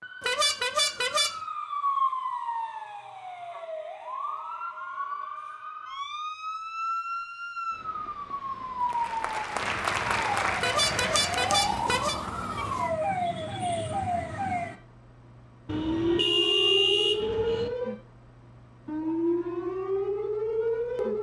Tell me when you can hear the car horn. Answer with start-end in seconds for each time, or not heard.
0.2-1.3, 10.6-12.2, 15.7-17.7.